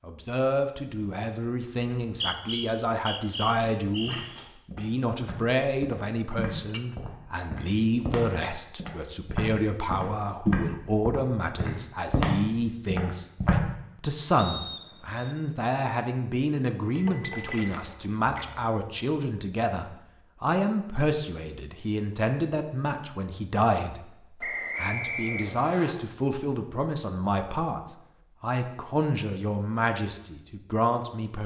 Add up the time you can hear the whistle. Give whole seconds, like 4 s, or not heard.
5 s.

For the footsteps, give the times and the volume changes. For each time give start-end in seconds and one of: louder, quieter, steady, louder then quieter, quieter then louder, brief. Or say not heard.
4.0-13.6 louder.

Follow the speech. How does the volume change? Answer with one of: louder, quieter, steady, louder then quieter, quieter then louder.
steady.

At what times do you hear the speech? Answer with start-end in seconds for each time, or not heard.
0.1-31.4.